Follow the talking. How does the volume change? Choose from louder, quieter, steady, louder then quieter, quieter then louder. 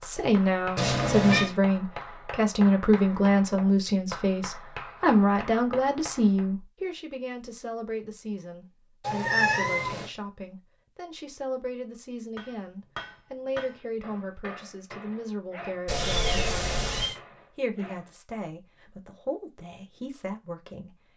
quieter.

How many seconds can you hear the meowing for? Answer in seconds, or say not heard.
3 s.